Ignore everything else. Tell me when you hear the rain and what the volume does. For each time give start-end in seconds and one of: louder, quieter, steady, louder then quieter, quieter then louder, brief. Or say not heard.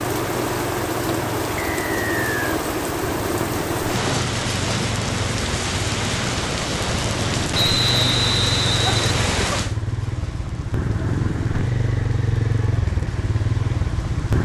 0.0-14.3 quieter.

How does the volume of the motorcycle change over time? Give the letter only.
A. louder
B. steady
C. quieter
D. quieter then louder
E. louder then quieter
A.